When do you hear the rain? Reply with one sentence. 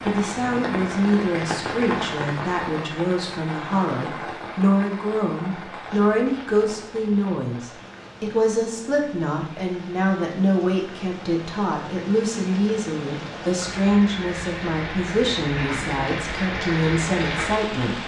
You can hear the rain from 0.0 to 18.0 s.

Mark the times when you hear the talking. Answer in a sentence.
The talking can be heard from 0.1 to 18.0 s.